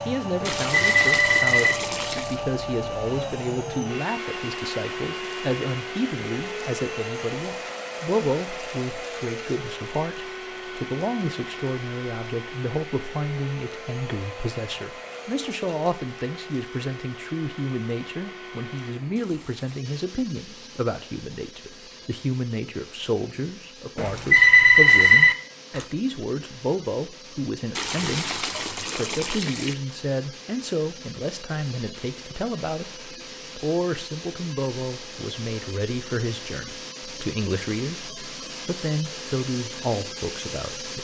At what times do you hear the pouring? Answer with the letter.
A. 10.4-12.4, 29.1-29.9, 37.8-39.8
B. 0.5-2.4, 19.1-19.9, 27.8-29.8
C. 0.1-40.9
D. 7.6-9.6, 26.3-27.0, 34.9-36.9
B.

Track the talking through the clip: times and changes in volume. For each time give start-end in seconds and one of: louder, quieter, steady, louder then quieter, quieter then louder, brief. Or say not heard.
0.1-40.9 steady.